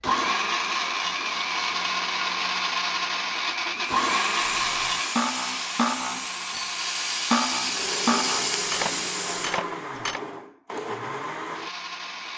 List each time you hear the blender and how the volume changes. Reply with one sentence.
You can hear the blender from 0.0 to 12.3 s, getting quieter.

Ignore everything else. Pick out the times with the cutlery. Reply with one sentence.
You can hear the cutlery from 4.4 to 10.2 s.